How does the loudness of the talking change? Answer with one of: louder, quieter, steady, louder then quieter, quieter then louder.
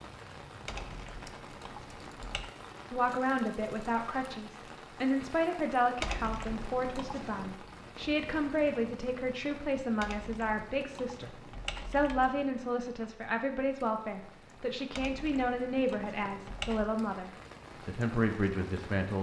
steady.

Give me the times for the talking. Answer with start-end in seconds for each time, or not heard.
2.9-19.1.